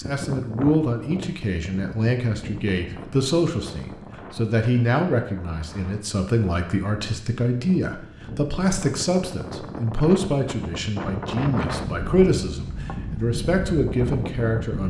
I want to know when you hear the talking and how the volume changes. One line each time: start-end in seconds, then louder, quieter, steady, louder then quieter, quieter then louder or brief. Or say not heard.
0.0-14.8 steady.